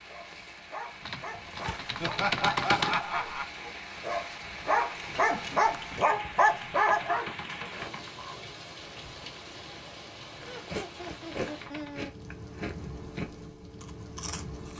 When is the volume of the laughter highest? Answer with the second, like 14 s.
3 s.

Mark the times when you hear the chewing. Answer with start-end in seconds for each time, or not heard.
10.4-14.7.